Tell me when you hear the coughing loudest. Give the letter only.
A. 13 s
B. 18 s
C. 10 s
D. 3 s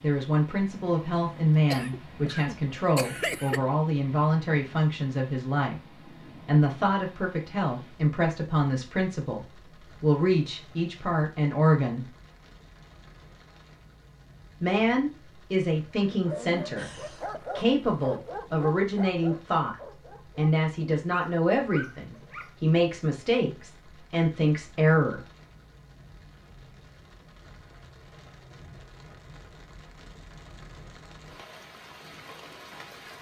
D.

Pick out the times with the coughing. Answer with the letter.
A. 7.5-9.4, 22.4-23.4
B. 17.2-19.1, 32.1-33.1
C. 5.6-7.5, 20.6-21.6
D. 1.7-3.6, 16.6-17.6
D.